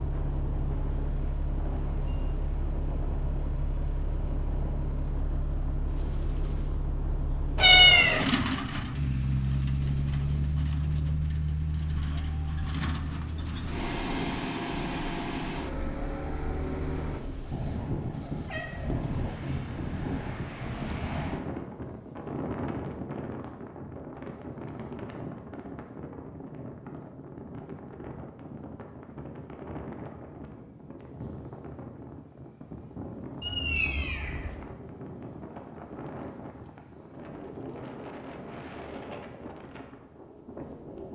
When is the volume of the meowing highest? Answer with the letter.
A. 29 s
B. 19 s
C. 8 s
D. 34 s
C.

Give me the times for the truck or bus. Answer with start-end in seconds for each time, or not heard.
0.0-17.2.